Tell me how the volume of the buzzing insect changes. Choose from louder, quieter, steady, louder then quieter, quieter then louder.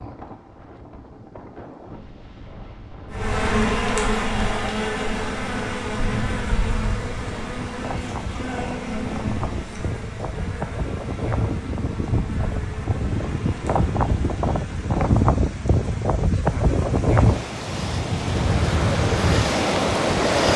quieter.